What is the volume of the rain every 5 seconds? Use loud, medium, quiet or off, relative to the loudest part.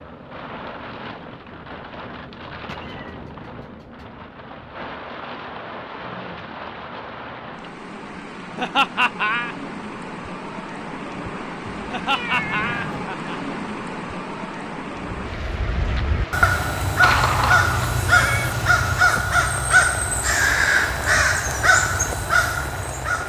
medium, loud, loud, loud, loud.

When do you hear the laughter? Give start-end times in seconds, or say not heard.
8.6-9.6, 11.8-13.3.